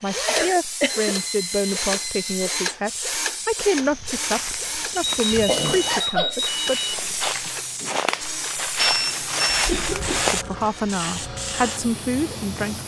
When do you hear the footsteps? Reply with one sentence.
You can hear the footsteps from 3.6 to 10.4 s.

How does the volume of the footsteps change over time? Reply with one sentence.
The volume of the footsteps goes up.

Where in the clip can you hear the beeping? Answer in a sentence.
The beeping can be heard from 0.8 to 2.5 s, from 5.0 to 7.0 s and from 8.8 to 9.7 s.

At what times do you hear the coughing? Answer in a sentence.
The coughing can be heard from 0.2 to 1.1 s, from 5.0 to 6.3 s and from 9.4 to 10.3 s.